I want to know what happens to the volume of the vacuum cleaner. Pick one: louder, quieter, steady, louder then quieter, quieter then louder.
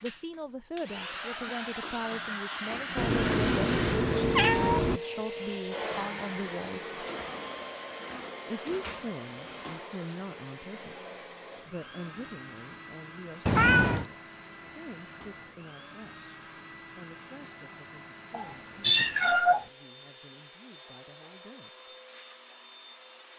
quieter.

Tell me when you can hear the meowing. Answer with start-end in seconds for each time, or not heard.
3.0-5.0, 13.4-14.1, 18.3-19.6.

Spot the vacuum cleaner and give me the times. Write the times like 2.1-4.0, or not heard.
0.0-23.3.